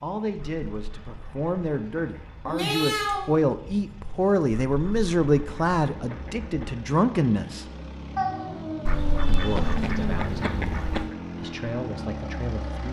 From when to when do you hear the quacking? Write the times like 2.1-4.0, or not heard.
0.3-2.6, 4.7-6.8, 8.8-11.2.